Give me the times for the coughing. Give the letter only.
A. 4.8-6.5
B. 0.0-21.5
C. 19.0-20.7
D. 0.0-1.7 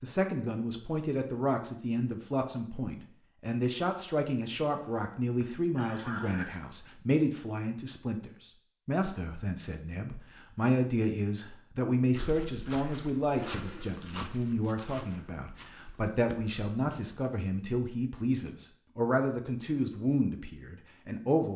A.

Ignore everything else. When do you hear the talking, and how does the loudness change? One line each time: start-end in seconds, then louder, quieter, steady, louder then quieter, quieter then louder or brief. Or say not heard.
0.0-21.5 steady.